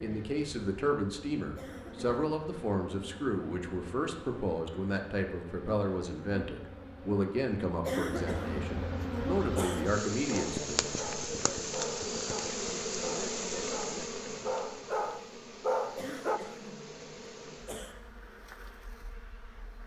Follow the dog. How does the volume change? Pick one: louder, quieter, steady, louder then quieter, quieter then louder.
louder.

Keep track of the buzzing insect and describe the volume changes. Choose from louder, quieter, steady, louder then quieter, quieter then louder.
louder then quieter.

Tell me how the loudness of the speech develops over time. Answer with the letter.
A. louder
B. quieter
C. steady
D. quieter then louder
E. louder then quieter
C.